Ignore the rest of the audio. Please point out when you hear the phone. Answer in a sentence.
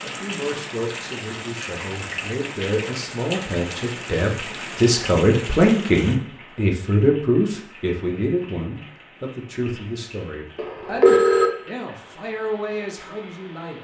The phone can be heard from 10.6 to 11.5 s.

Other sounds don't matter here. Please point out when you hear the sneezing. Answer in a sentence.
The sneezing can't be heard in this clip.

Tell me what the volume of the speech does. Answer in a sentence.
The loudness of the speech goes up, then down.